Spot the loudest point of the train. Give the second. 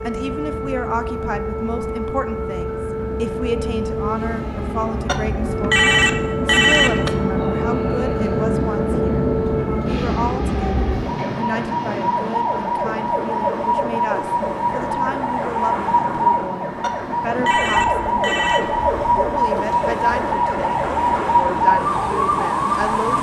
9 s.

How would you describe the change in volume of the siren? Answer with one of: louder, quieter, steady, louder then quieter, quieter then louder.
louder.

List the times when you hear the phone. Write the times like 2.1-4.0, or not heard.
5.0-7.1, 16.8-18.6.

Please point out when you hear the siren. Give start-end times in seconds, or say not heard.
0.0-23.1.